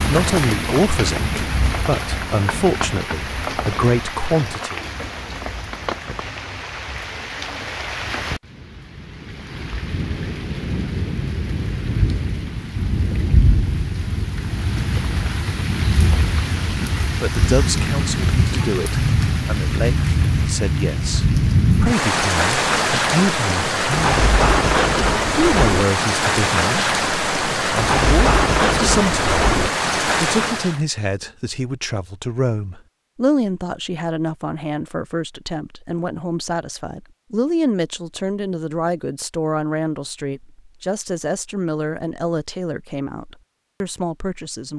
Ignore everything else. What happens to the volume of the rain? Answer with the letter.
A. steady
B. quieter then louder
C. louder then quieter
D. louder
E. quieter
D.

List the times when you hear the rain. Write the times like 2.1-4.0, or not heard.
0.0-30.8.